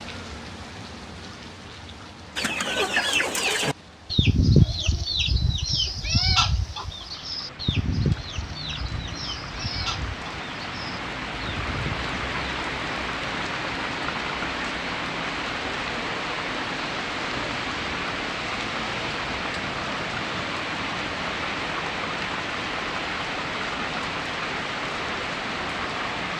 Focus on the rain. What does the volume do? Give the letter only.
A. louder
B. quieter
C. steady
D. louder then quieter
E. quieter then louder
A.